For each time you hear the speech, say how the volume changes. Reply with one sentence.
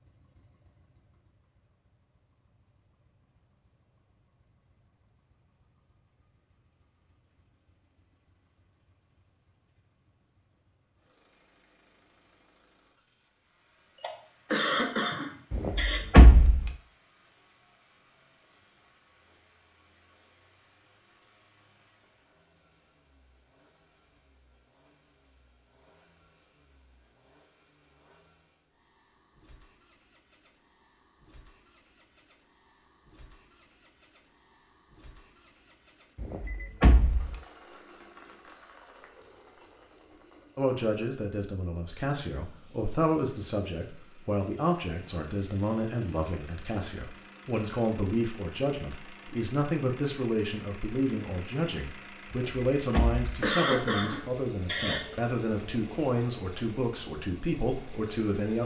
You can hear the speech from 40.5 to 58.6 s, at a steady volume.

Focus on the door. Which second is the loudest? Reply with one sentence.
The volume of the door peaks at 16 seconds.